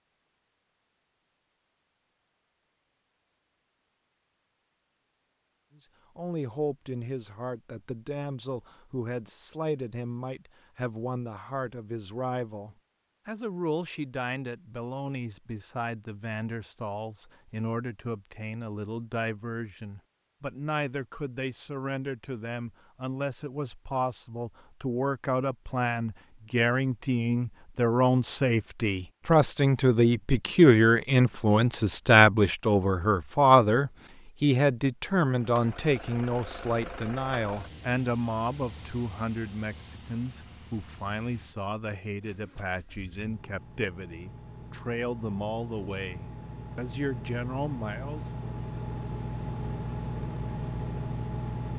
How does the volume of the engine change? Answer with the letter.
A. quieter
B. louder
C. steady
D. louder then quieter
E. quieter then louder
E.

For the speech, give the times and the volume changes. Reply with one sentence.
You can hear the speech from 5.8 to 48.5 s, getting louder then quieter.